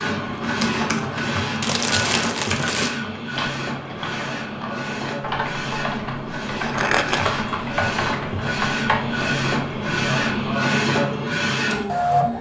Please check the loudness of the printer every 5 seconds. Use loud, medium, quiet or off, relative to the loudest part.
medium, medium, loud.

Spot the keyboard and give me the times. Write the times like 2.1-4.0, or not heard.
0.2-10.6.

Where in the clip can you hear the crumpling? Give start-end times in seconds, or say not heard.
1.6-3.0, 6.7-7.3.